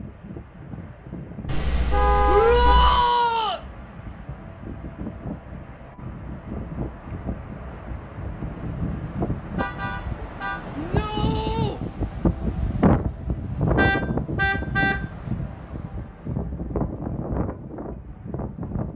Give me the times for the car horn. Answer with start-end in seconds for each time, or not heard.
1.4-3.1, 9.6-10.6, 13.8-14.9.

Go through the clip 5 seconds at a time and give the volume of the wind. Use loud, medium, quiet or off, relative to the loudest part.
quiet, medium, loud, medium.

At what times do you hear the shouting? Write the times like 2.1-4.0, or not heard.
2.2-3.6, 10.8-11.8.